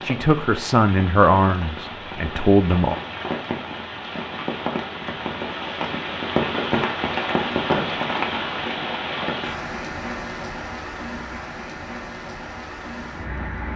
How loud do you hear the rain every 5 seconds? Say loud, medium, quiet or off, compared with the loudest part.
medium, loud, medium.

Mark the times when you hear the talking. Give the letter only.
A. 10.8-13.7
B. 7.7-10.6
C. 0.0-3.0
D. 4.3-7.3
C.